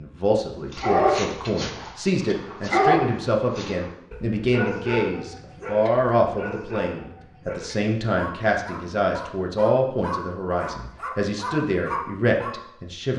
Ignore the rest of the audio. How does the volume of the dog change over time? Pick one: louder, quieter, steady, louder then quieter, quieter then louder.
quieter then louder.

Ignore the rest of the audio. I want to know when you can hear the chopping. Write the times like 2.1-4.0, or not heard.
not heard.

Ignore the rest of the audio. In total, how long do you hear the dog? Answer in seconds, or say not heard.
12 s.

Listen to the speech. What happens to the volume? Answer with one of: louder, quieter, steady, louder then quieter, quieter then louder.
steady.